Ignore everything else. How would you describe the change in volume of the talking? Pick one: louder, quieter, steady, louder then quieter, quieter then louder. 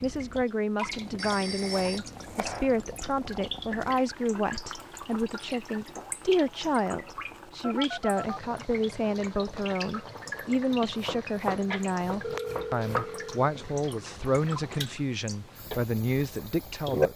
steady.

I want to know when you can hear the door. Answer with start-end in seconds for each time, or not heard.
not heard.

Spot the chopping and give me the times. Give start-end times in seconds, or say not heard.
1.6-2.8, 10.9-13.1.